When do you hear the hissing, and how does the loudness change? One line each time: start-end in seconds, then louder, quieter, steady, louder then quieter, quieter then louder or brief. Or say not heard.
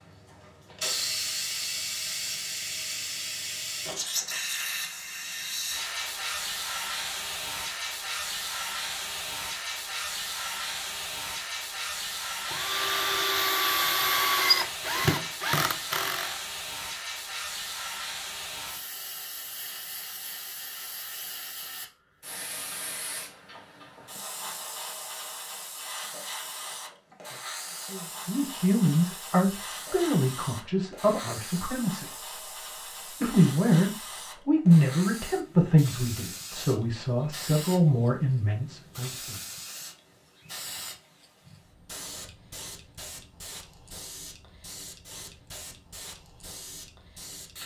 0.0-47.6 quieter.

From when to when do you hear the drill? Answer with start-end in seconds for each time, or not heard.
12.4-16.4.